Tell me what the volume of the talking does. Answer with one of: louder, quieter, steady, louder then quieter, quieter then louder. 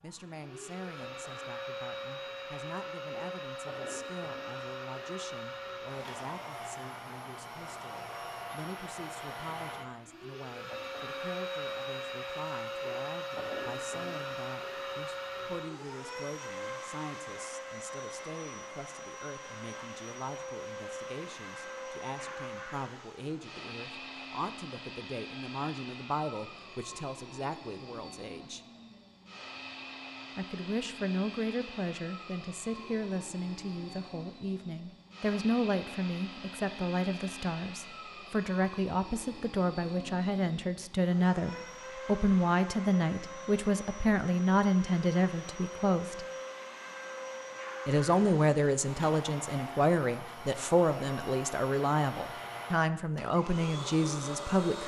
louder.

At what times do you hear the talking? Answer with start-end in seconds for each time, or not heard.
0.0-28.6, 30.4-46.2, 47.9-54.8.